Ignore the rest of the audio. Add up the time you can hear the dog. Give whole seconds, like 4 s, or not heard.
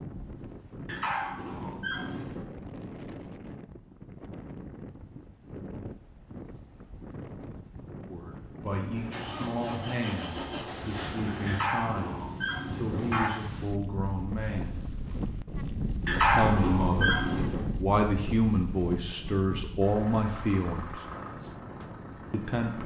5 s.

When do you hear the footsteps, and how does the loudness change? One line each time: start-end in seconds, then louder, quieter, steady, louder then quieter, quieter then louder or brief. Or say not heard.
not heard.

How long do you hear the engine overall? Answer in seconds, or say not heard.
6 s.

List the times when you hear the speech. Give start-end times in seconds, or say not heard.
8.1-14.8, 16.2-21.1, 22.3-22.8.